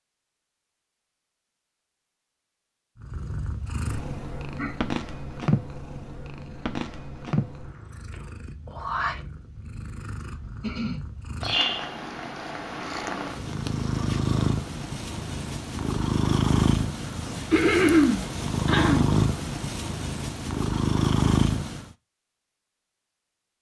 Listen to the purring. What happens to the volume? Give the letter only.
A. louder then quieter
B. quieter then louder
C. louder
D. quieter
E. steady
C.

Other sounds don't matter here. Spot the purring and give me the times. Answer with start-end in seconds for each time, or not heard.
3.0-21.9.